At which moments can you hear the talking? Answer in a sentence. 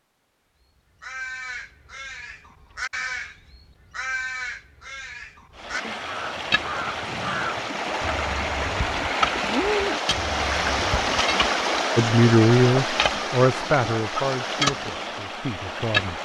The talking can be heard from 11.9 to 16.2 s.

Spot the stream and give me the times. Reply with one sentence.
You can hear the stream from 5.5 to 16.2 s.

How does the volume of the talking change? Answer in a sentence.
The loudness of the talking goes down.